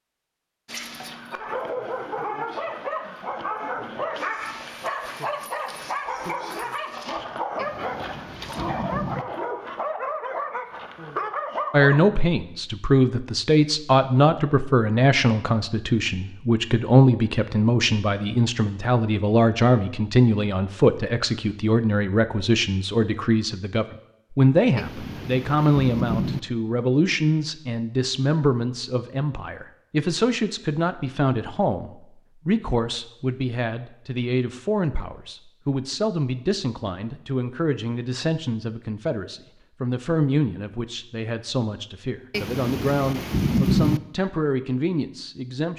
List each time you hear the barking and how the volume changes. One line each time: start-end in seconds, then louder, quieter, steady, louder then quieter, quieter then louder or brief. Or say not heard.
0.7-12.2 steady.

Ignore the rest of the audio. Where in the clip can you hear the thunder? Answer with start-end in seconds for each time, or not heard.
7.5-9.2, 24.8-26.4, 42.3-44.0.